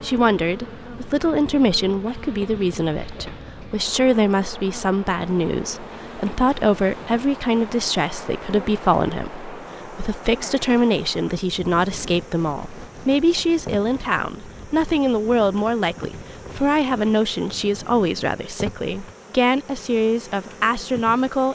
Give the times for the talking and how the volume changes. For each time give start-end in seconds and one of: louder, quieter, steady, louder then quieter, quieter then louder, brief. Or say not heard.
0.0-21.5 steady.